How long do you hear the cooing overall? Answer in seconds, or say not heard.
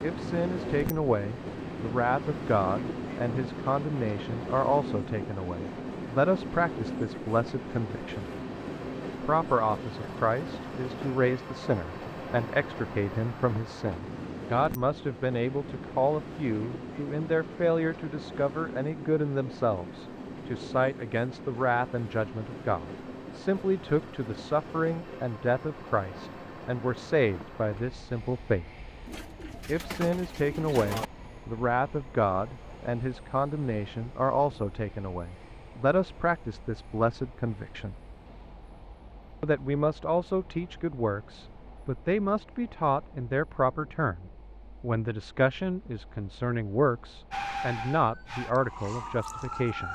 2 s.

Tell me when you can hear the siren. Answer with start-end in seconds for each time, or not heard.
47.3-49.9.